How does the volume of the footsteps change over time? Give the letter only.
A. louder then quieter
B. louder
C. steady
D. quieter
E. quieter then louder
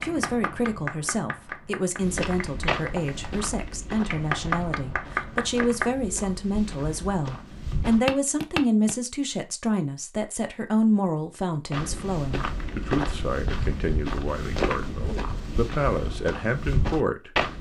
E.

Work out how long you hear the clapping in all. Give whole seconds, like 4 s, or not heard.
6 s.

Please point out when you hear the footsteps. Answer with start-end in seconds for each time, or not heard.
1.9-8.9, 11.7-17.5.